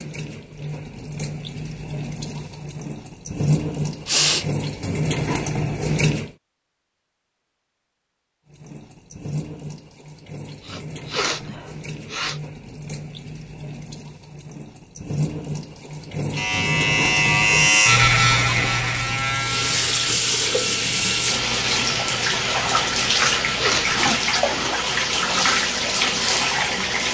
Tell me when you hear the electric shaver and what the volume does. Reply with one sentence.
You can hear the electric shaver from 16.4 to 24.1 s, getting quieter.